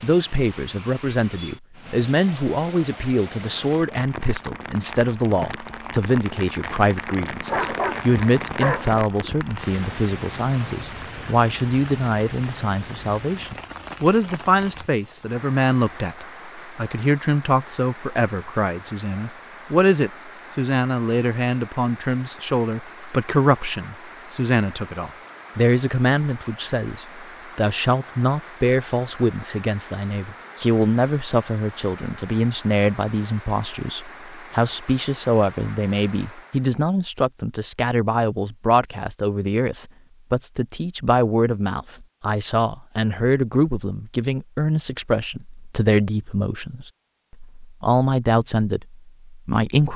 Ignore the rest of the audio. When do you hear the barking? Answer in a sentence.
The barking can be heard from 7.5 to 9.1 s.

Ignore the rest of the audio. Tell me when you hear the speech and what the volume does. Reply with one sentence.
The speech can be heard from 0.0 to 49.9 s, at a steady volume.